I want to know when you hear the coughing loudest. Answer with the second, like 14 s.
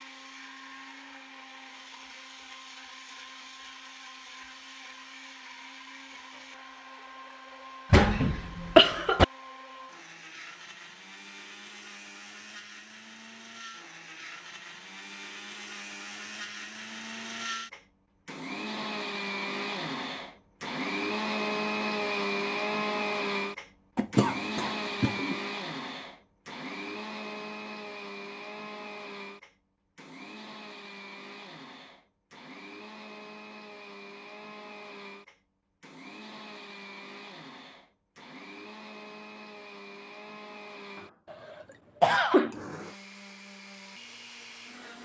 9 s.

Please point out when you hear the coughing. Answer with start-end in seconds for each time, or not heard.
7.9-9.2, 23.9-25.4, 41.3-42.5.